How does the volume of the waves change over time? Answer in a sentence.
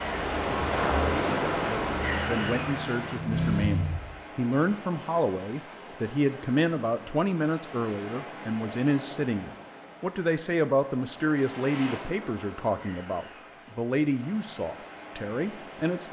The volume of the waves goes down.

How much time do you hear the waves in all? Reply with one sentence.
The waves can be heard for 16 seconds in total.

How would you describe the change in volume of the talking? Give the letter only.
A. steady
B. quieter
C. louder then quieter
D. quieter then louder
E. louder
A.